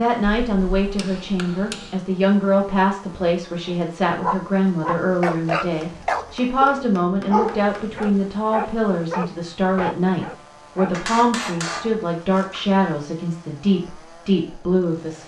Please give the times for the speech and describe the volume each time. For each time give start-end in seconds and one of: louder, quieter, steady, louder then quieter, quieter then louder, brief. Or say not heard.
0.0-15.2 steady.